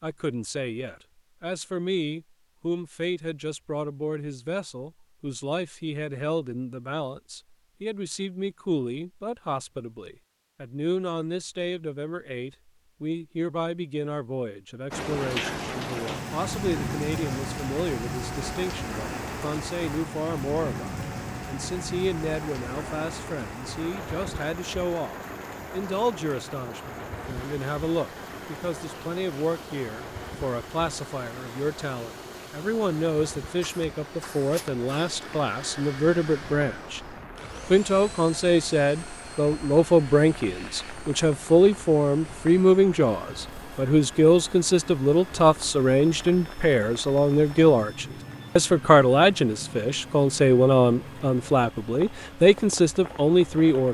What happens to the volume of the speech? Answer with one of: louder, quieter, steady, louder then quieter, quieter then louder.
louder.